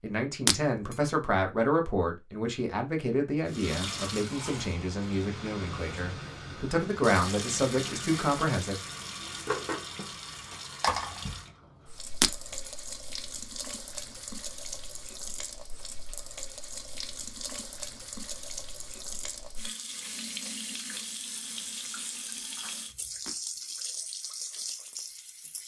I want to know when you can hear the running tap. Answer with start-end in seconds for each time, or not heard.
3.5-25.6.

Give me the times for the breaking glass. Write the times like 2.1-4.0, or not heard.
0.5-0.9, 12.2-12.7, 23.2-23.8.